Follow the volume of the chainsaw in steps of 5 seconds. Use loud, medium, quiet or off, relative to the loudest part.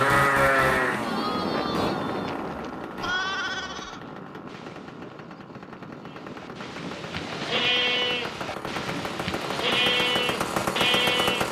medium, medium, loud.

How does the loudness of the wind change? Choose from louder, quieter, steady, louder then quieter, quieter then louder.
quieter.